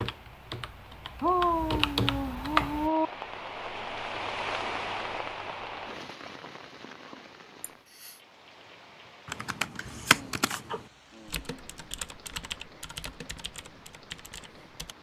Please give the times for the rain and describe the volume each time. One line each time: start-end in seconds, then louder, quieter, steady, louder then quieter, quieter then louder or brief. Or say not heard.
0.0-14.9 louder then quieter.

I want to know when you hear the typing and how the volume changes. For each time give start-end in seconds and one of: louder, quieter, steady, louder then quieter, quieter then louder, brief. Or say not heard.
0.0-2.9 brief
9.2-14.9 quieter.